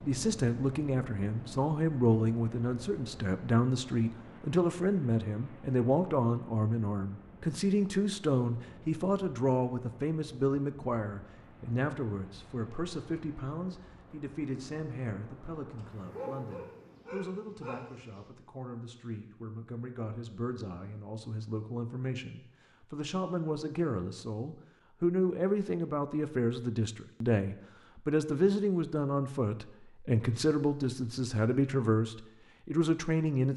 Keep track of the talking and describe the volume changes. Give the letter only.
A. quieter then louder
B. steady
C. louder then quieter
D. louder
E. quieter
A.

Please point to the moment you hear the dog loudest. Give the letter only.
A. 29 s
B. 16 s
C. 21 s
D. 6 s
B.